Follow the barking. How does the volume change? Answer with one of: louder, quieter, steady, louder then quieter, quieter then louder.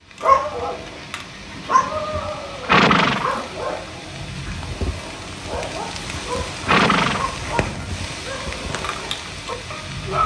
quieter then louder.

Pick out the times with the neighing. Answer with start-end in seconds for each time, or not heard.
1.6-3.4, 5.6-7.3.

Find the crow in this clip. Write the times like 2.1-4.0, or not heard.
not heard.